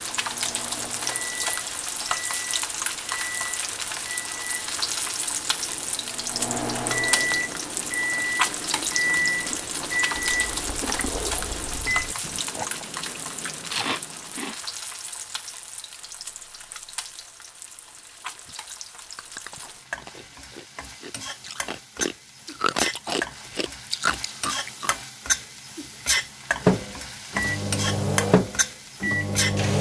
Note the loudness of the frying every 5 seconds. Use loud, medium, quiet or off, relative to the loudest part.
loud, loud, loud, medium, medium, loud.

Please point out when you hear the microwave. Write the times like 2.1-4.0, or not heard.
0.0-12.3, 26.6-29.7.